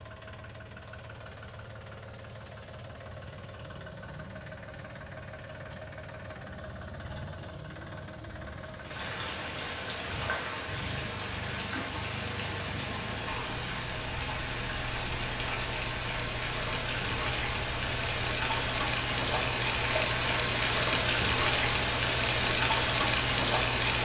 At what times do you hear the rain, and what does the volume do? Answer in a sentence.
You can hear the rain from 8.8 to 24.0 s, getting louder.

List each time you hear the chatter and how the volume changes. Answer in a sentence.
You can't hear the chatter here.